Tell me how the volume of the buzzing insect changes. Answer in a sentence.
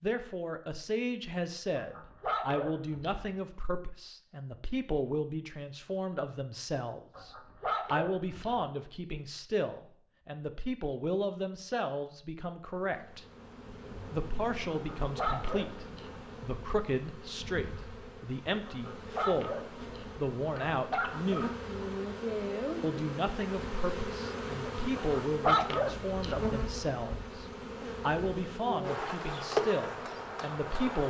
The volume of the buzzing insect goes up.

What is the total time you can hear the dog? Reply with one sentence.
You can hear the dog for 9 seconds altogether.